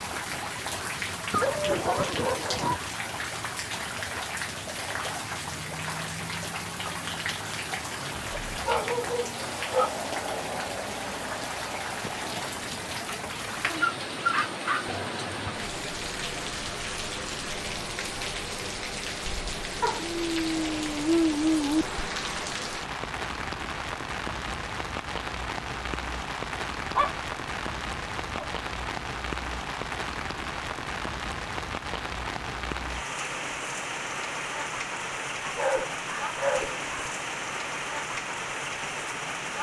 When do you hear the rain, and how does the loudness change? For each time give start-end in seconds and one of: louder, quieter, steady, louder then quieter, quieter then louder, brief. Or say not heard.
0.0-39.5 steady.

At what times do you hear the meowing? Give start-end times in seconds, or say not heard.
not heard.